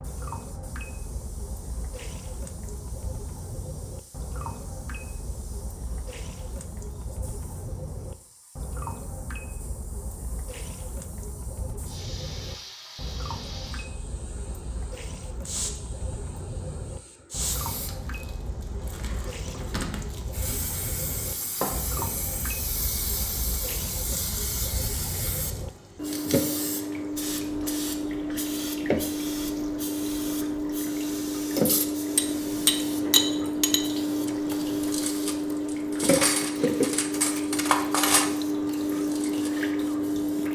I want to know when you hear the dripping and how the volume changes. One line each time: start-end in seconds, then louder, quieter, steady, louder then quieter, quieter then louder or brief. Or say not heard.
0.0-40.5 louder.